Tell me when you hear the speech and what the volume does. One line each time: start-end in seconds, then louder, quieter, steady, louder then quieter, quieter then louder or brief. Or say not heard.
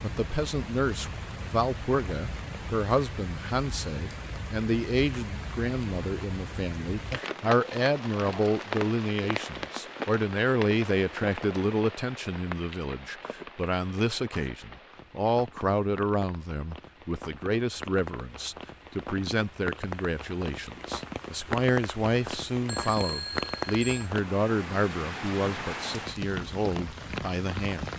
0.0-27.9 steady.